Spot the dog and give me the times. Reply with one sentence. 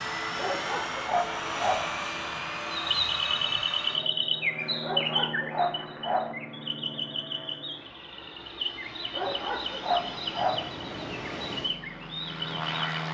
You can hear the dog from 0.3 to 1.9 s, from 4.8 to 6.3 s and from 9.1 to 10.7 s.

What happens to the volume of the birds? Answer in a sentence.
The loudness of the birds goes down.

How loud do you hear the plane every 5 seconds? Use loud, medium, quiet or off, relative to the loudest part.
loud, medium, loud.